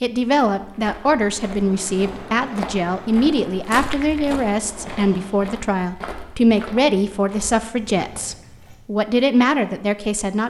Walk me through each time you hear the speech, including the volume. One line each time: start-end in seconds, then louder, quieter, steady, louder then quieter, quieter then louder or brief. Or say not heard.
0.0-10.4 steady.